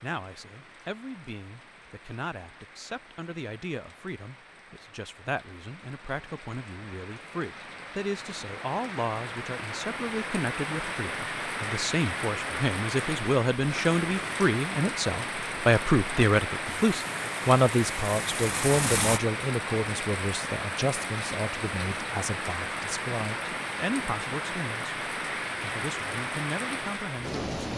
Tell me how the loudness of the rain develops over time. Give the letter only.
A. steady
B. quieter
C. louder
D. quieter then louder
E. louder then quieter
C.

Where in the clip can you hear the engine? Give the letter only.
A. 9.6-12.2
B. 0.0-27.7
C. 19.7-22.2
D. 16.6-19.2
D.